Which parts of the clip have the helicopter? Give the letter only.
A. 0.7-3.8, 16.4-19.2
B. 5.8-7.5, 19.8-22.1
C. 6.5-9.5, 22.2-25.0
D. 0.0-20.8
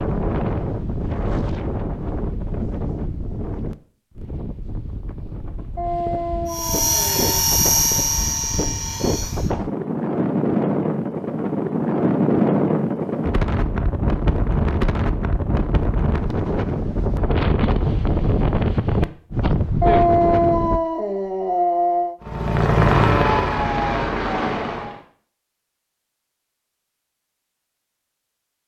C.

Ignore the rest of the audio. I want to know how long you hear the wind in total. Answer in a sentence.
The wind can be heard for 21 seconds in total.